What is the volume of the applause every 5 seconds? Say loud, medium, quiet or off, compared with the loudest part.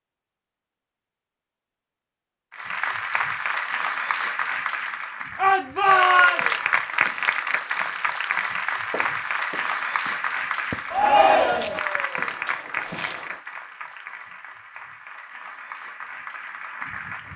loud, loud, medium, medium.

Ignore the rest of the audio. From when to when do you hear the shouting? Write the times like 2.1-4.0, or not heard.
5.3-6.4, 10.9-11.8.